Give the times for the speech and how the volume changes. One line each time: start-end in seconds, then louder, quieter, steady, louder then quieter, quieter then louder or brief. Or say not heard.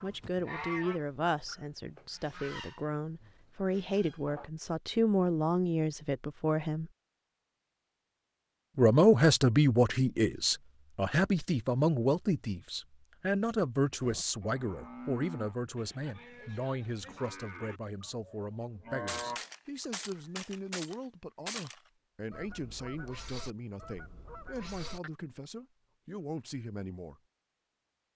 0.0-6.9 quieter then louder
8.8-27.2 quieter.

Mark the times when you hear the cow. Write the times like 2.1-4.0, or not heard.
14.0-19.4.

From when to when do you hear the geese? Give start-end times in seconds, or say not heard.
0.0-4.5, 19.1-25.1.